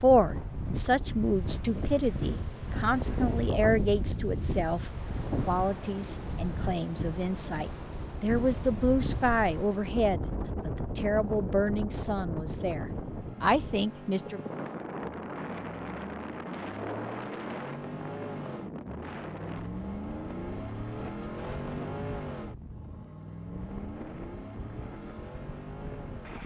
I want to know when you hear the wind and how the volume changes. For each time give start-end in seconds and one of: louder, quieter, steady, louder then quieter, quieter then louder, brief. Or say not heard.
0.0-26.4 quieter.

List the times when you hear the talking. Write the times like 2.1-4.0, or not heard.
0.0-14.4.